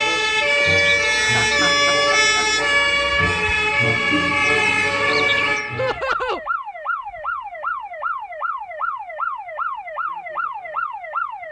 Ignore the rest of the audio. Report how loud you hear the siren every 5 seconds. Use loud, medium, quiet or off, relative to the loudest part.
loud, medium, medium.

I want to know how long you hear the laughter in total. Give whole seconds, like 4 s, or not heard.
3 s.